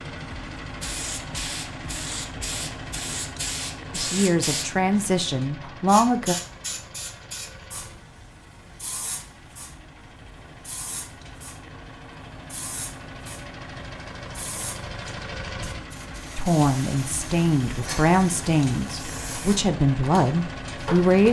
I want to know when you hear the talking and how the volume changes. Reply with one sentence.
The talking can be heard briefly from 3.9 to 6.3 s; and from 16.4 to 21.2 s, at a steady volume.